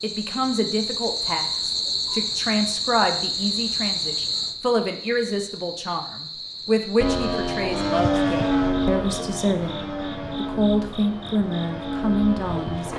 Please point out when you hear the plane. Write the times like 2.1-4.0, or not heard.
7.0-12.9.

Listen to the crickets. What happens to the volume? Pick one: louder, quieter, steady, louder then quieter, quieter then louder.
quieter.